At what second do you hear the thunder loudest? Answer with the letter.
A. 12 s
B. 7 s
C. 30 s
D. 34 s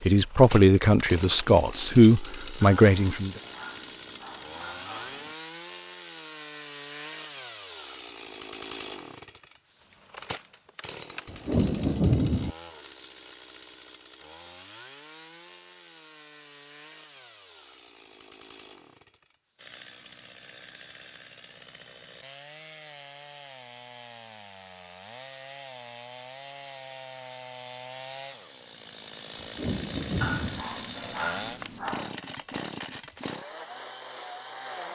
A.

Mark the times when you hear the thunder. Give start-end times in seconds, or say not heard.
11.2-12.6, 29.4-30.6.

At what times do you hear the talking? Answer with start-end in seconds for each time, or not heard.
0.1-3.3.